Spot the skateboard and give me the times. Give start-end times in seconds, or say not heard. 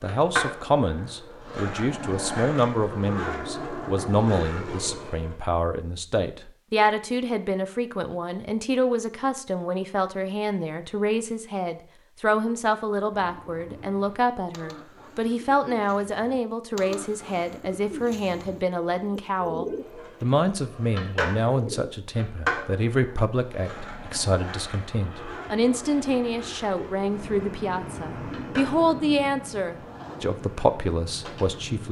0.0-5.3, 19.8-31.6.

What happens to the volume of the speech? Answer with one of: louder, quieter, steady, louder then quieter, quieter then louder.
steady.